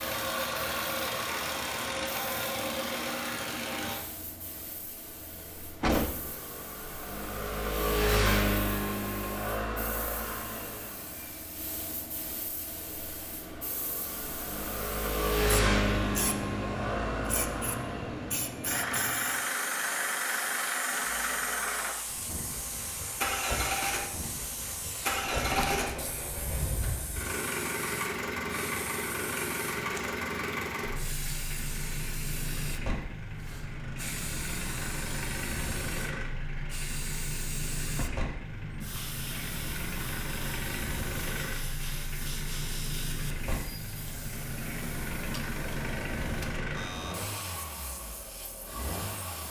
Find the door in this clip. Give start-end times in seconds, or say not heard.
5.8-6.4, 25.2-27.1, 37.9-38.3.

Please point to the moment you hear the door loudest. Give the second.
6 s.